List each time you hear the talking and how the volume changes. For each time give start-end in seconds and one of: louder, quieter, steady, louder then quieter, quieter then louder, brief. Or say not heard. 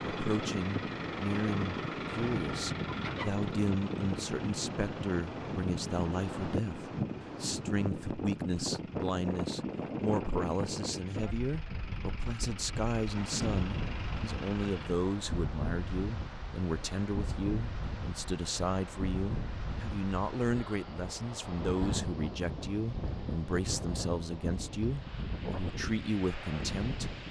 0.1-27.1 steady.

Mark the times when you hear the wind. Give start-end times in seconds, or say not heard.
0.0-27.2.